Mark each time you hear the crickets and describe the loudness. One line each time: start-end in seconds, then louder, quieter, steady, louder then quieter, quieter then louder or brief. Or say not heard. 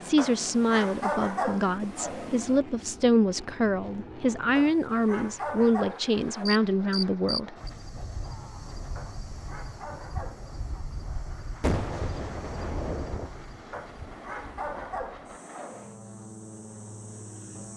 6.5-17.7 quieter.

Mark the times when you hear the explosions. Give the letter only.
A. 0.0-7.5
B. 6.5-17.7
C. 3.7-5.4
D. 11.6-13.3
D.